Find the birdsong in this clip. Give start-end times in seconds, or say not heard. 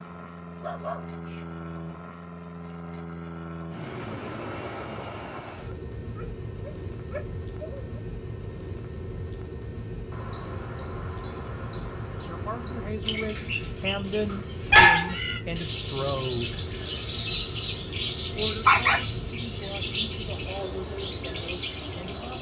9.8-22.3.